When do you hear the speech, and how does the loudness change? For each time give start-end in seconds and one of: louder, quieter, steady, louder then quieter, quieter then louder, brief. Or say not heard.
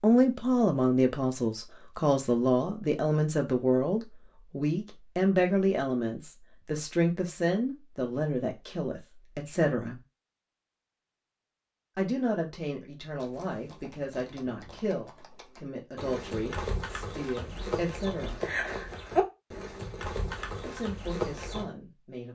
0.0-10.0 quieter
11.9-18.4 steady
20.6-22.3 brief.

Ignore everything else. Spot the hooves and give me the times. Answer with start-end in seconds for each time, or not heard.
13.2-21.6.